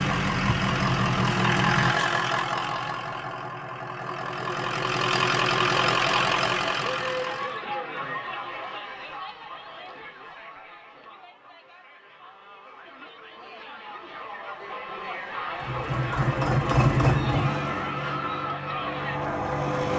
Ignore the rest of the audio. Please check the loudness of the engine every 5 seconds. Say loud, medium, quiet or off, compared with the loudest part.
loud, loud, off, loud.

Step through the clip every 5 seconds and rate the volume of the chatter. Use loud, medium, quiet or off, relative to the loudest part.
off, loud, medium, loud.